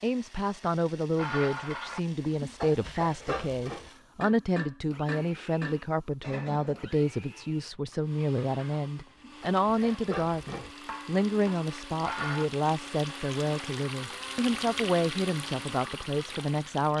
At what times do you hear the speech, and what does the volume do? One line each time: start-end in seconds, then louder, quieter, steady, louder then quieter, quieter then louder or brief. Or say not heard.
0.0-16.9 steady.